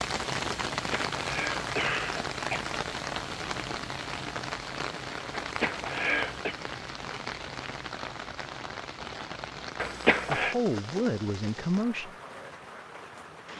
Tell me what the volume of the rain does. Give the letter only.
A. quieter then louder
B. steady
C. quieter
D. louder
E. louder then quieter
C.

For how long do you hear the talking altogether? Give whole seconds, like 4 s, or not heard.
2 s.